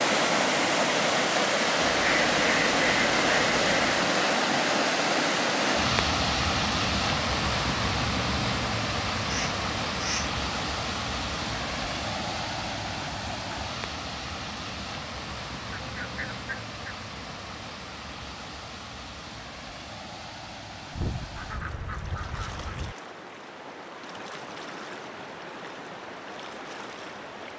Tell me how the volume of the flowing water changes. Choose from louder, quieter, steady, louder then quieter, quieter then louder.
quieter.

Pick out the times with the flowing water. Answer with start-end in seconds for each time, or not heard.
0.0-27.5.